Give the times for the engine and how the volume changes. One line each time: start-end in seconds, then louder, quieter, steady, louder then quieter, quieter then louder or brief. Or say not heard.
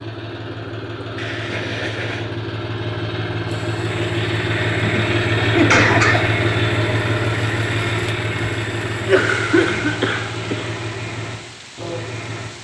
0.0-12.5 louder then quieter.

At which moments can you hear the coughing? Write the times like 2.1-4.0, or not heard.
1.1-2.3, 4.8-6.4, 9.0-10.7.